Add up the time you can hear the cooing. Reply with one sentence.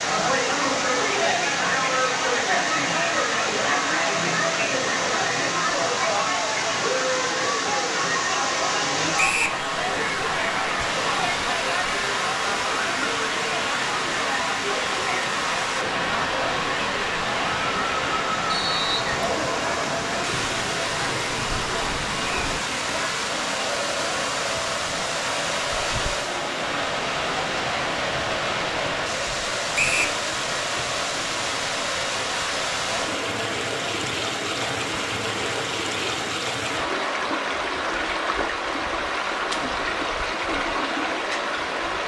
The cooing can't be heard in this clip.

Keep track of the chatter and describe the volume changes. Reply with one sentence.
The volume of the chatter goes down.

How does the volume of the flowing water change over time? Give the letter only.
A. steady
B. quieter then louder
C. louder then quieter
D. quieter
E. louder
A.